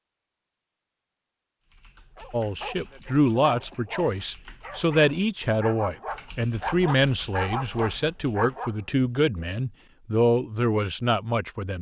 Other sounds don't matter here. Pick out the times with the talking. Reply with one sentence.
The talking can be heard from 2.3 to 11.7 s.